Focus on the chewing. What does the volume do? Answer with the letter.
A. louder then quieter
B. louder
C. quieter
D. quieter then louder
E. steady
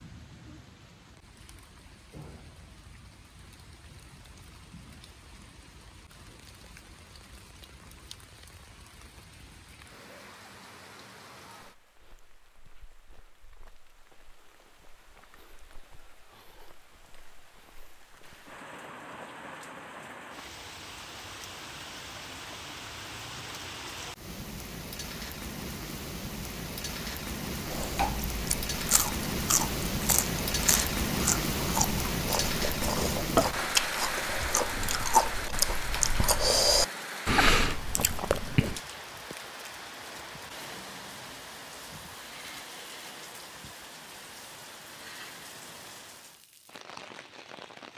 B.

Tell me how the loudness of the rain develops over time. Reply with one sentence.
The loudness of the rain goes up, then down.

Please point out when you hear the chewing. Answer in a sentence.
The chewing can be heard from 27.6 to 38.8 s.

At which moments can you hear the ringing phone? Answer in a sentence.
The ringing phone can't be heard in this clip.